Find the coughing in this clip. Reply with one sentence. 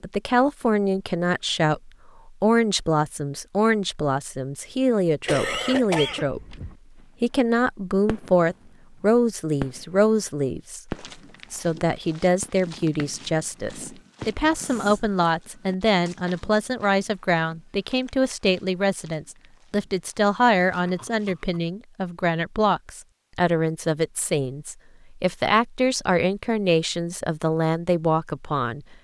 You can hear the coughing from 5.2 to 6.8 s, from 14.5 to 15.2 s and from 20.7 to 21.6 s.